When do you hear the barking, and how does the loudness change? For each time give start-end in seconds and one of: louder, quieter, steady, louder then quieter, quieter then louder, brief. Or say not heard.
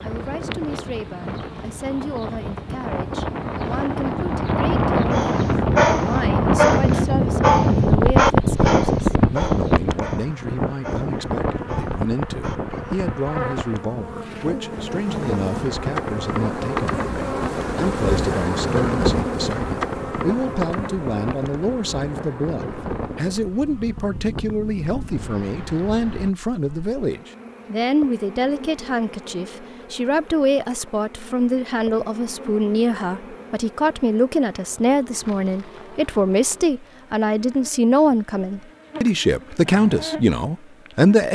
5.1-13.0 quieter.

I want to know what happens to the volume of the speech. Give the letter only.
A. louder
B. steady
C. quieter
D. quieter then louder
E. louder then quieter
A.